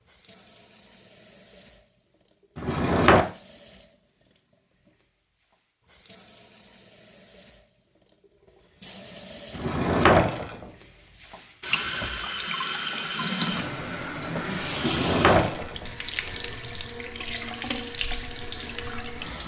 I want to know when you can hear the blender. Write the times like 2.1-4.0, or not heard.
not heard.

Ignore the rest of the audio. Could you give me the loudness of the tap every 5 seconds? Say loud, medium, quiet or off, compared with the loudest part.
quiet, quiet, loud, loud.